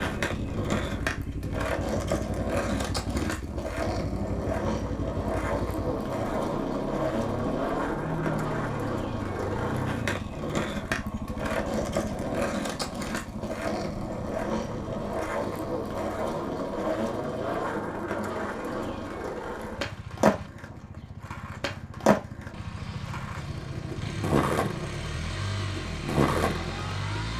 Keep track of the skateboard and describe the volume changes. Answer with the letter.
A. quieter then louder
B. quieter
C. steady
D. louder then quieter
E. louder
C.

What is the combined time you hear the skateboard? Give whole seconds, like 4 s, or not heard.
27 s.